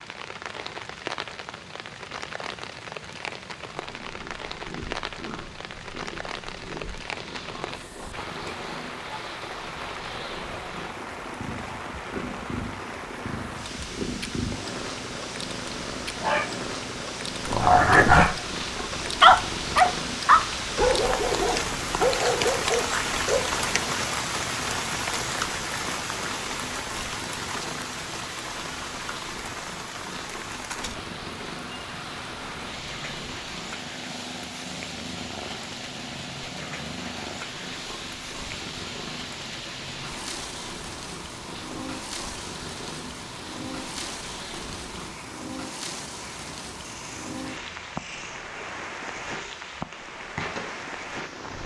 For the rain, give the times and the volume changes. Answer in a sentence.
You can hear the rain from 0.0 to 51.6 s, getting louder then quieter.